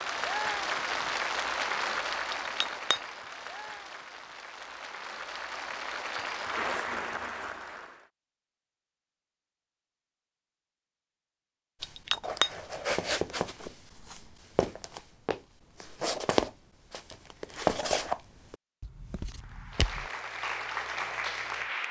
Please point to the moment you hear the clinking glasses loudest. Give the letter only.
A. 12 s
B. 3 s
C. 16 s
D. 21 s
A.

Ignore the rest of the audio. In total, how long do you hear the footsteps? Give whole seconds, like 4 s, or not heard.
8 s.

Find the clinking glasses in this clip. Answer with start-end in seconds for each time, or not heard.
2.3-3.0, 11.8-12.9.